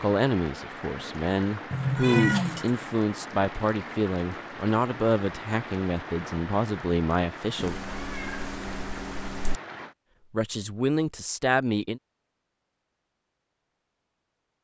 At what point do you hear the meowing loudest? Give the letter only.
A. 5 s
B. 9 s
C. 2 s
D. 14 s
C.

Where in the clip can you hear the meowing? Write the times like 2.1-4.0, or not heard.
1.7-2.7, 7.5-9.6.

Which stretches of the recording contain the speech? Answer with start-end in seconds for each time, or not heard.
0.0-7.8, 10.3-12.0.